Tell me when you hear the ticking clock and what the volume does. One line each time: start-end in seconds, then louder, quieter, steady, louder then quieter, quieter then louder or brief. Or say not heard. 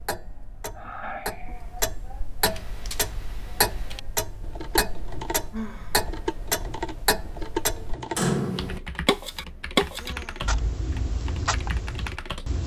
0.0-12.6 louder then quieter.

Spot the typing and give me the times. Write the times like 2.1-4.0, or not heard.
2.4-12.6.